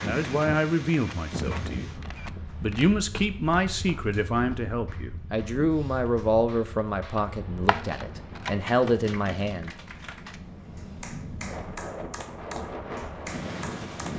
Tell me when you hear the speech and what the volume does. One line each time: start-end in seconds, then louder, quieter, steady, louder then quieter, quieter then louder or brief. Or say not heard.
0.0-9.7 steady.